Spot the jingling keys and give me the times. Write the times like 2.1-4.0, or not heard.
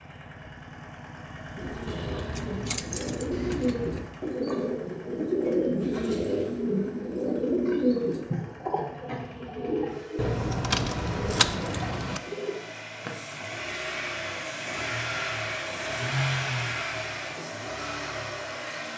1.9-4.1, 10.2-12.2.